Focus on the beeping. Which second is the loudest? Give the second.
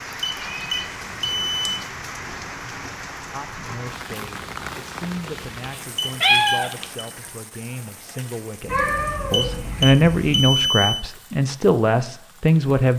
11 s.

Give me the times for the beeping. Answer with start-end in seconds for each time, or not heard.
0.2-1.8, 6.0-7.0, 9.3-11.1.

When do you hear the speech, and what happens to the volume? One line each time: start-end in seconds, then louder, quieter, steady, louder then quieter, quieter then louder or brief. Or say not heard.
3.3-12.9 louder.